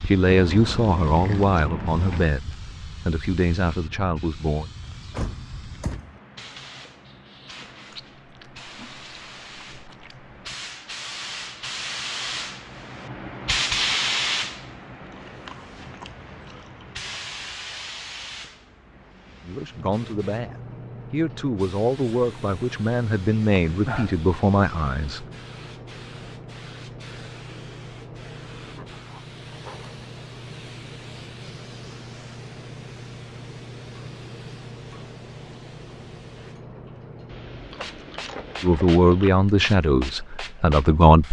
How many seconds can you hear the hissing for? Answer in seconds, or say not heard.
41 s.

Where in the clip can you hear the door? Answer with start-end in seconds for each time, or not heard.
4.8-6.2.